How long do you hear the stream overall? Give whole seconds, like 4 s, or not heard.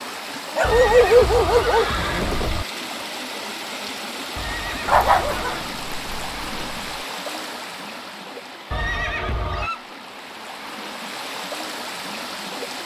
13 s.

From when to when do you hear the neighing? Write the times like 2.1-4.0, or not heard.
0.6-2.6, 4.3-5.7, 8.7-9.7.